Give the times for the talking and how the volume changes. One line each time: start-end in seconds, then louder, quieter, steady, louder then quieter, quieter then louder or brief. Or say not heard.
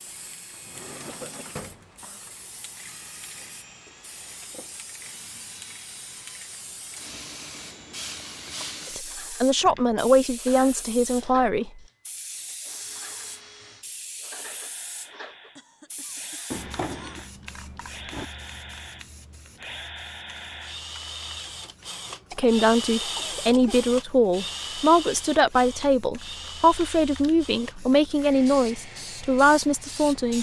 8.9-11.8 brief
22.3-30.3 steady.